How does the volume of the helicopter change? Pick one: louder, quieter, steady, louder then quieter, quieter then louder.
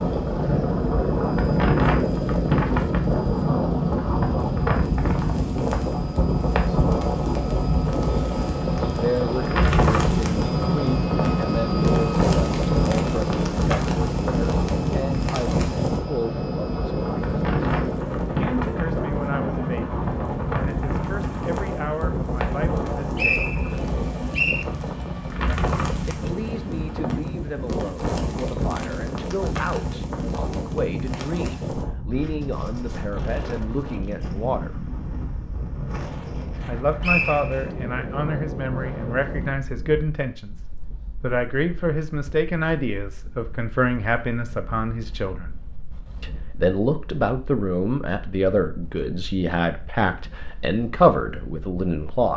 louder then quieter.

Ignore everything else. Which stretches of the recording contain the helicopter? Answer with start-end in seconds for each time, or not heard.
0.0-27.1.